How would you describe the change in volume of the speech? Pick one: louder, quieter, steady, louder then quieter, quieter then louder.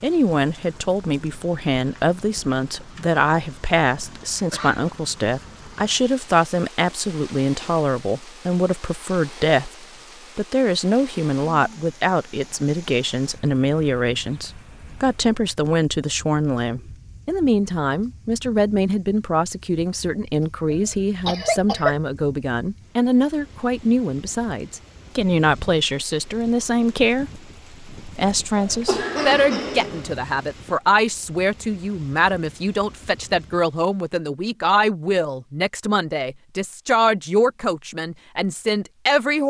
steady.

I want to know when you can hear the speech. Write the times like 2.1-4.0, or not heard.
0.0-39.4.